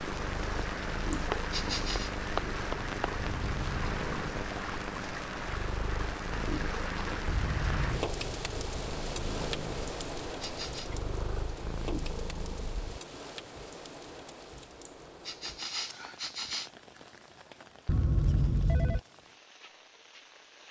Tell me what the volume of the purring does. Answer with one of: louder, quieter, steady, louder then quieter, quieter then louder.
steady.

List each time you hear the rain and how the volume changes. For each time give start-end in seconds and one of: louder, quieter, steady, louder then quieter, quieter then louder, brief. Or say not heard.
0.0-20.6 quieter.